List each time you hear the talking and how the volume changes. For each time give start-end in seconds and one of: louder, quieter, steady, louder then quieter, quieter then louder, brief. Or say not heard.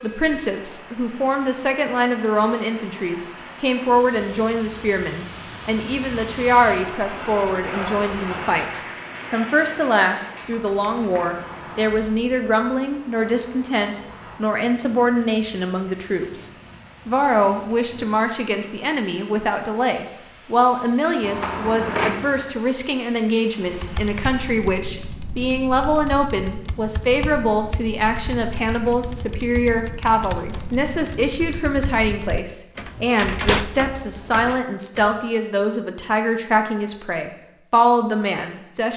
0.0-38.9 steady.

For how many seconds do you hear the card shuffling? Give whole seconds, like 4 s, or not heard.
2 s.